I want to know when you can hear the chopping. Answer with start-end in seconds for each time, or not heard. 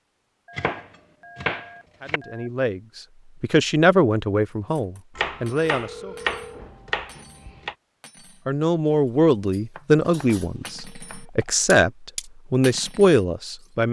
0.6-2.2, 5.2-7.8, 9.7-11.2.